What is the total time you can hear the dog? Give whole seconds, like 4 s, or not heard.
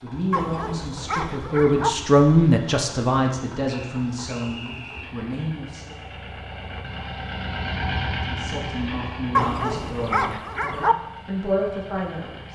3 s.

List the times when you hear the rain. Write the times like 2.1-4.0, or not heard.
not heard.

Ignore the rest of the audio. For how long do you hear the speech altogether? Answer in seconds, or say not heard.
10 s.